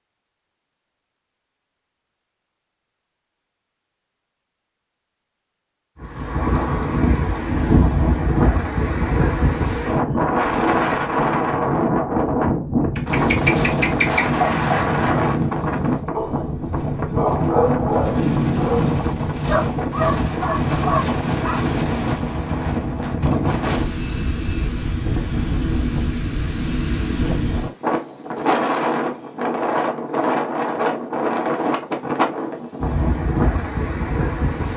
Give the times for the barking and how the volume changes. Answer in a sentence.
The barking can be heard from 12.9 to 21.6 s, getting quieter then louder.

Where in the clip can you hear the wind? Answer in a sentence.
You can hear the wind from 6.0 to 34.7 s.